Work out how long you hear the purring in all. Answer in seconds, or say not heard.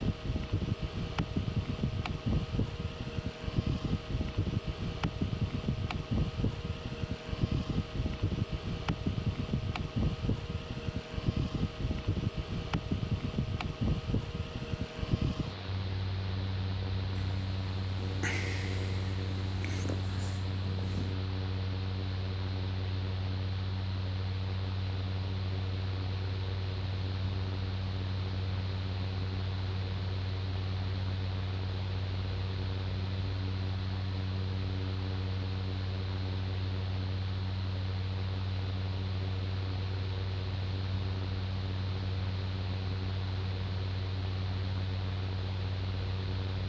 4 s.